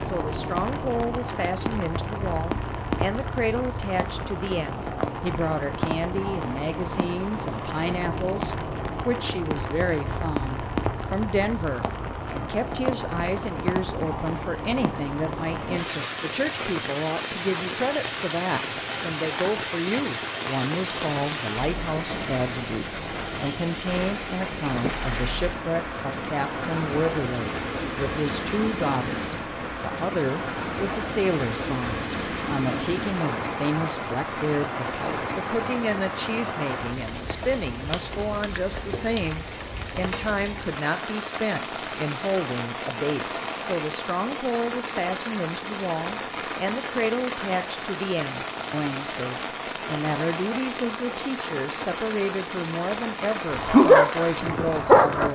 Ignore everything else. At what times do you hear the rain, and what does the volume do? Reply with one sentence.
You can hear the rain from 0.0 to 55.2 s, at a steady volume.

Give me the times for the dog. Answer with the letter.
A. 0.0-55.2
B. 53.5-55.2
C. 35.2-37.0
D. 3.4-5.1
B.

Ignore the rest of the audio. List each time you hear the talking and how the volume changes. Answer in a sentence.
The talking can be heard from 0.0 to 55.2 s, at a steady volume.